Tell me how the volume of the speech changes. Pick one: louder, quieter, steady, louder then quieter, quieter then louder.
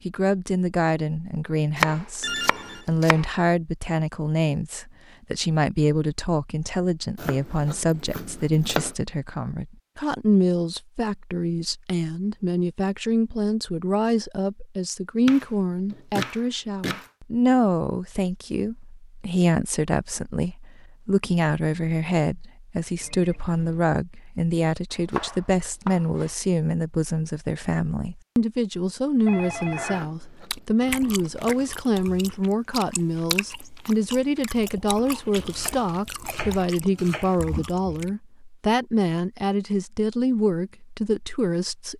steady.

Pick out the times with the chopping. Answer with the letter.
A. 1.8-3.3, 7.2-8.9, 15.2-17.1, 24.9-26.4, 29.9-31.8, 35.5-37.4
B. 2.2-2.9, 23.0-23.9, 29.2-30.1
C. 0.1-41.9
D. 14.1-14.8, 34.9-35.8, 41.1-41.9
A.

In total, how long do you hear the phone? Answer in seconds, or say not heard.
2 s.